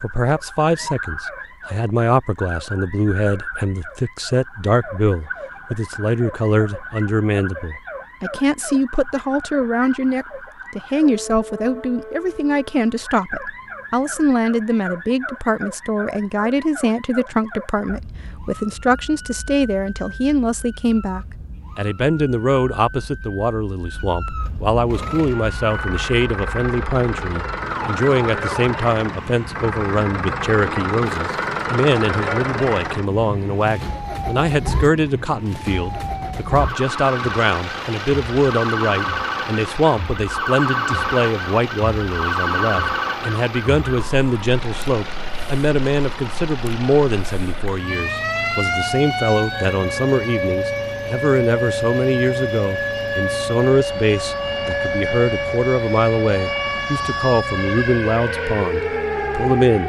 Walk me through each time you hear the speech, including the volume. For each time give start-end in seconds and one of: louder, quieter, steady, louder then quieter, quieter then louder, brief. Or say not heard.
0.0-59.8 steady.